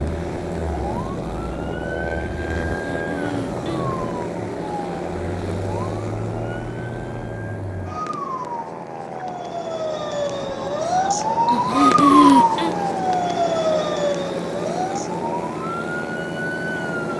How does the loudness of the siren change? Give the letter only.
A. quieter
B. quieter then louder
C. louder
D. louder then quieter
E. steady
D.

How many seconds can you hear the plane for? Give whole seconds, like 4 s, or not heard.
17 s.